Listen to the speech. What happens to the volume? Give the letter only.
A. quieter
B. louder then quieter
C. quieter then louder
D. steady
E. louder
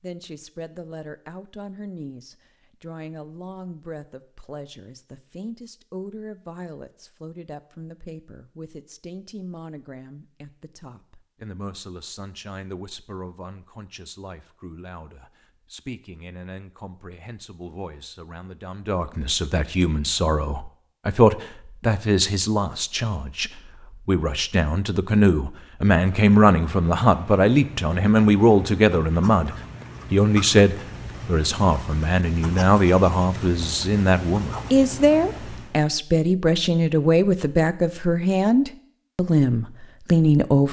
E.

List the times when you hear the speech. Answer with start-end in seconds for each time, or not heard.
0.0-40.6.